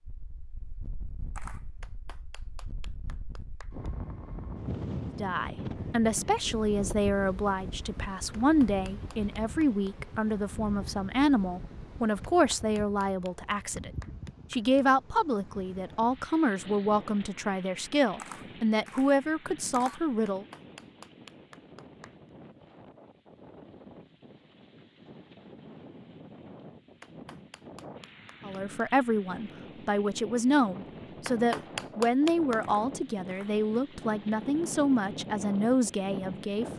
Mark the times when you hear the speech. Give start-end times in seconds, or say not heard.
5.2-13.9, 14.5-20.4, 28.4-36.6.